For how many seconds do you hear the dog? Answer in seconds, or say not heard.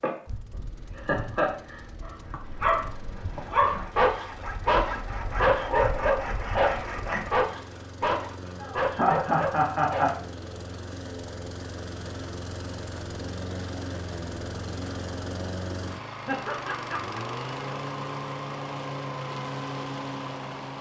8 s.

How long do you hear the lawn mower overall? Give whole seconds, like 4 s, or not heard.
21 s.